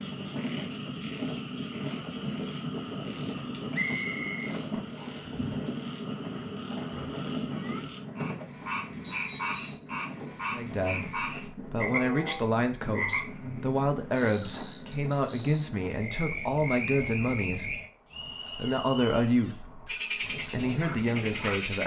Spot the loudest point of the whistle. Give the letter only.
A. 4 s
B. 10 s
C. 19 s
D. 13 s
A.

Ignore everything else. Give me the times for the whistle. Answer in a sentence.
You can hear the whistle from 3.7 to 5.2 s, from 9.0 to 9.9 s and from 18.1 to 19.3 s.